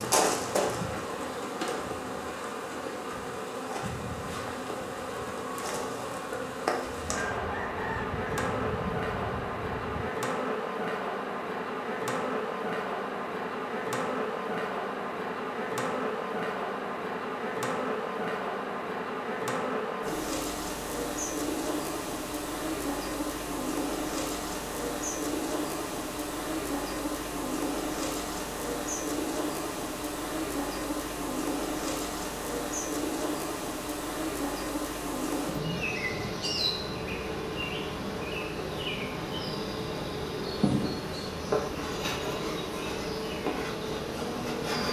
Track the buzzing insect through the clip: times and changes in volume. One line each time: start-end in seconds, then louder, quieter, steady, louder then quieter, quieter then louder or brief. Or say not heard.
0.0-44.8 steady.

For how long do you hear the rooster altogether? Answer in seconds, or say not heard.
3 s.